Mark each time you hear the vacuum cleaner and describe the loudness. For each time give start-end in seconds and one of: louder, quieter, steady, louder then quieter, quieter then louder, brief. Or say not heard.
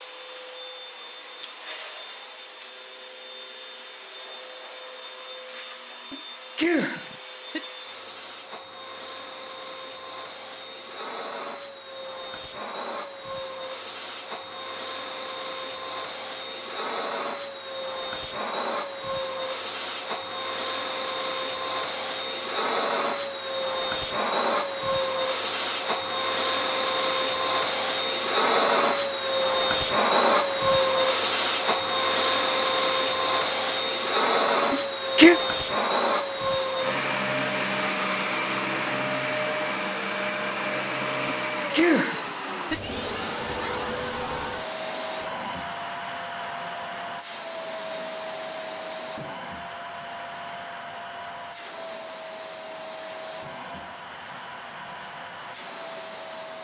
0.0-56.5 louder then quieter.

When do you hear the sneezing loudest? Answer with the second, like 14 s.
35 s.